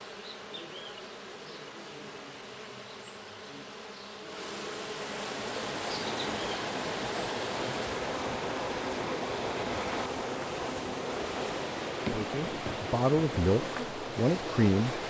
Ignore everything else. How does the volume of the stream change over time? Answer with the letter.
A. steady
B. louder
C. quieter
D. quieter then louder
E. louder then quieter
A.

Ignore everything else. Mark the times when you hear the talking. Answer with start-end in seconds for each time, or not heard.
12.1-15.0.